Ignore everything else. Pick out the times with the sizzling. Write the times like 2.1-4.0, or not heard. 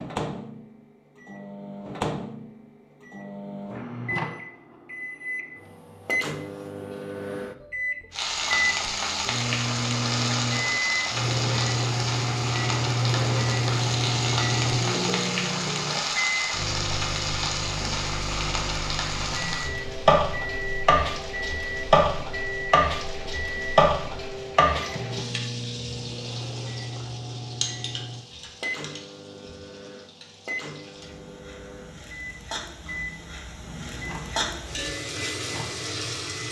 8.1-36.4.